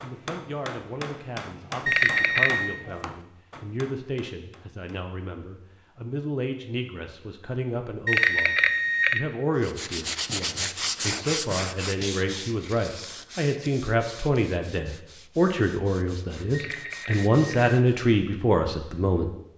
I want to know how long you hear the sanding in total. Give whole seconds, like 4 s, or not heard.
8 s.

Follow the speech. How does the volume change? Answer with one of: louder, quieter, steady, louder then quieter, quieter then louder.
louder.